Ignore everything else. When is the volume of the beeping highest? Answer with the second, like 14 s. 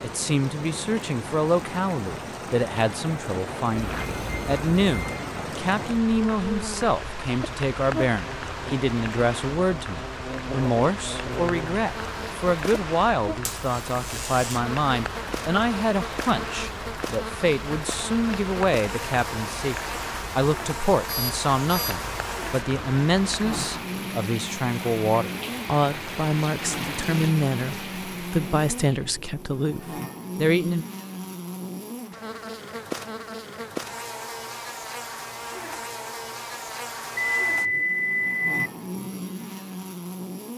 38 s.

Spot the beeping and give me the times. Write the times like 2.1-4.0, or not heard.
3.8-5.2, 21.1-22.0, 37.1-38.6.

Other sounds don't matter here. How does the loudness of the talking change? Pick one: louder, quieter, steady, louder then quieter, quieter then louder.
steady.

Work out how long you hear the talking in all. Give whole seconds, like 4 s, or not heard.
31 s.